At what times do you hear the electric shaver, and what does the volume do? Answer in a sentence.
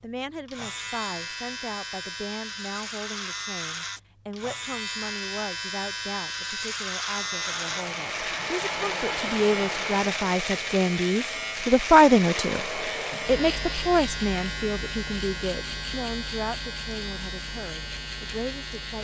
The electric shaver can be heard from 0.0 to 18.9 s, at a steady volume.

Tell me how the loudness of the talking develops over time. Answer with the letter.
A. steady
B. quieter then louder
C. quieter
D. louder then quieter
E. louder
D.